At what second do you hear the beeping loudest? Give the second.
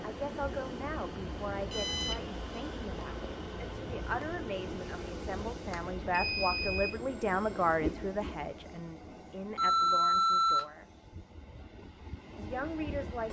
10 s.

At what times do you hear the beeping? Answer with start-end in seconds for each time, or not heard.
1.7-2.6, 5.7-6.9, 9.6-10.7.